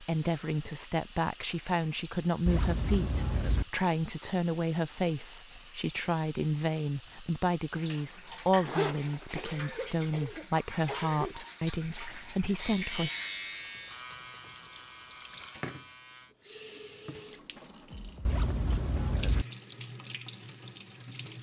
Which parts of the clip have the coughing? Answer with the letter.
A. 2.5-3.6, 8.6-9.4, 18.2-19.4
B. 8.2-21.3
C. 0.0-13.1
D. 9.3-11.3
D.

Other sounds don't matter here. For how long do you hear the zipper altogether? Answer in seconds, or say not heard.
3 s.